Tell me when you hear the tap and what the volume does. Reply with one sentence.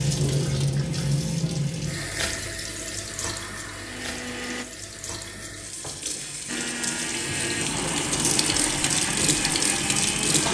The tap can be heard from 0.0 to 10.4 s, getting quieter then louder.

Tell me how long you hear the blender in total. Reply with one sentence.
You can hear the blender for 5 seconds altogether.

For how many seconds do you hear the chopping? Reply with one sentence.
You can't hear the chopping here.